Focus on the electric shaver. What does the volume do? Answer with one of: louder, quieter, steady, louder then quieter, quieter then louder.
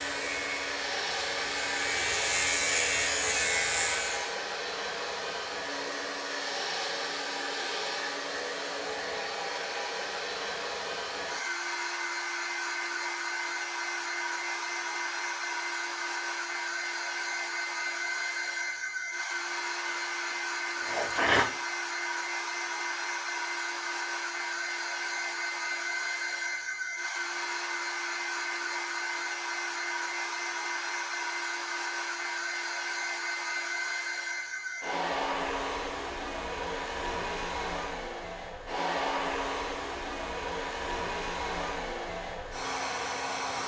louder.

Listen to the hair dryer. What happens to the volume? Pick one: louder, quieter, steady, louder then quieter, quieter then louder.
steady.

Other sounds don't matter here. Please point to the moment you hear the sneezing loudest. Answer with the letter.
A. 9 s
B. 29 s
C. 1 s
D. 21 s
D.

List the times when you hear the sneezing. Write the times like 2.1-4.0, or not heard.
19.9-21.5.